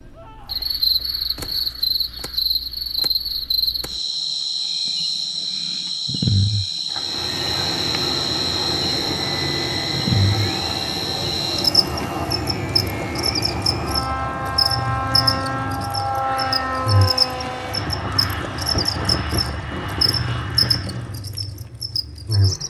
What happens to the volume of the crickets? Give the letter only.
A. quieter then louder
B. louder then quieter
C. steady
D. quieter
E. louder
C.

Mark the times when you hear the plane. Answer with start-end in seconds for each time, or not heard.
6.8-21.2.